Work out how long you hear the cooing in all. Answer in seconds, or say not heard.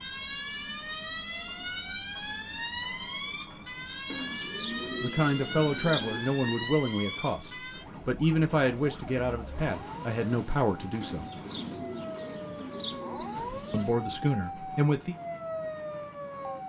5 s.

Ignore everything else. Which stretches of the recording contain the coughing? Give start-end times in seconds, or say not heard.
not heard.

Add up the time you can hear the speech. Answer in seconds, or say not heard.
8 s.